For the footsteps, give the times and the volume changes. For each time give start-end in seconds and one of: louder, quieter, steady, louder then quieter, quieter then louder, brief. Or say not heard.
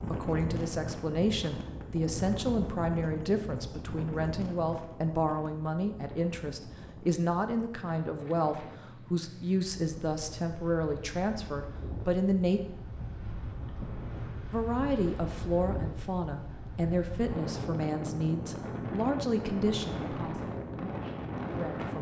not heard.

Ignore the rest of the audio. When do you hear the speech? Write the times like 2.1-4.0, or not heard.
0.0-12.6, 14.5-21.9.